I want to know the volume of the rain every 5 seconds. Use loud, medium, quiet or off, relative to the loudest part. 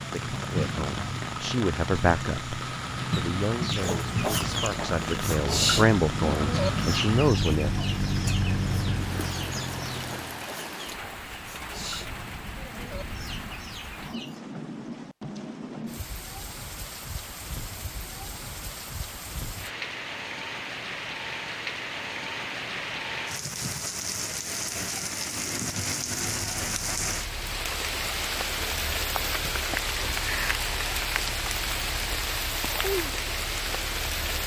medium, medium, medium, medium, loud, loud, loud.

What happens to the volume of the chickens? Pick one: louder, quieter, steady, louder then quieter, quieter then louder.
quieter.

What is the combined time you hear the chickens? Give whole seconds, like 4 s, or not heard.
11 s.